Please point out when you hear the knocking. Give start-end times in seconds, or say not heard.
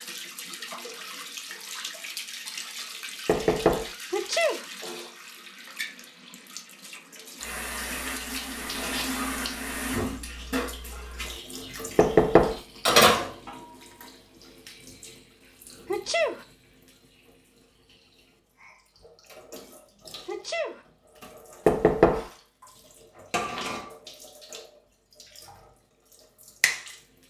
3.2-3.9, 11.9-12.6, 21.6-22.2.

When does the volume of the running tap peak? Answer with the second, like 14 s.
13 s.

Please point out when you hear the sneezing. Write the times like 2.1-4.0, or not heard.
4.1-4.7, 15.8-16.4, 20.2-20.8.